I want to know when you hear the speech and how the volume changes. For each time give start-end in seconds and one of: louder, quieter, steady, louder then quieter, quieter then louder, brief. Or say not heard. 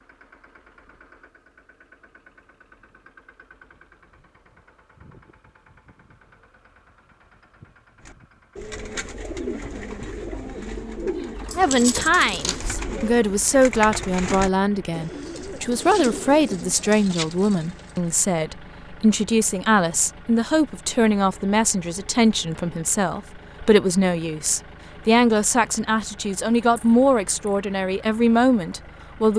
11.6-29.3 steady.